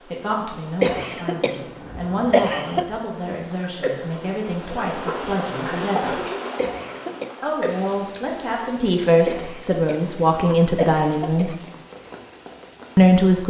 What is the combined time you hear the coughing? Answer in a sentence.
You can hear the coughing for 5 seconds altogether.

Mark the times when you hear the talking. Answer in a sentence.
The talking can be heard from 0.0 to 6.2 s, from 7.4 to 11.5 s and from 12.9 to 13.4 s.